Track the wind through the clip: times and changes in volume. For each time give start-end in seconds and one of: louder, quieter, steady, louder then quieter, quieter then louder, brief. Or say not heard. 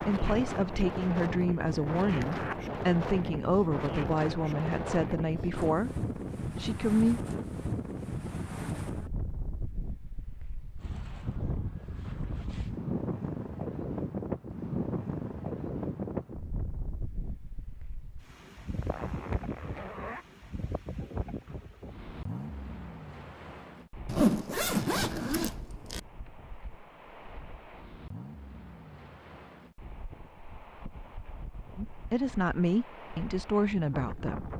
0.0-34.5 quieter.